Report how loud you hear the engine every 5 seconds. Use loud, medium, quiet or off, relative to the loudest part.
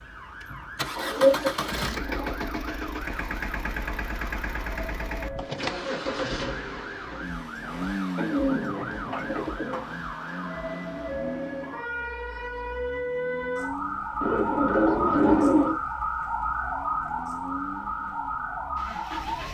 loud, loud, medium, medium.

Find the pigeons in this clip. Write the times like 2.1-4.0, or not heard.
0.9-2.4, 8.2-9.8, 14.2-15.8.